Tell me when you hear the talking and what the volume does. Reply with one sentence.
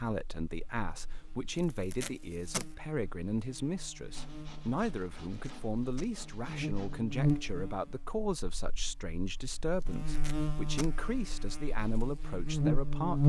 You can hear the talking from 0.0 to 13.2 s, at a steady volume.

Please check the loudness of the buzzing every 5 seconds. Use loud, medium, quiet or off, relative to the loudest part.
quiet, medium, loud.